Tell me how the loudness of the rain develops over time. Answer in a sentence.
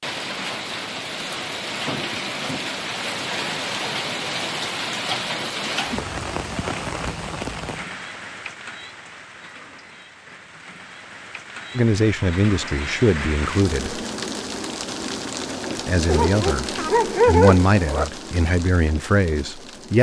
The loudness of the rain goes down, then up.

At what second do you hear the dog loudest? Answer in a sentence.
The loudest moment of the dog is at 17 seconds.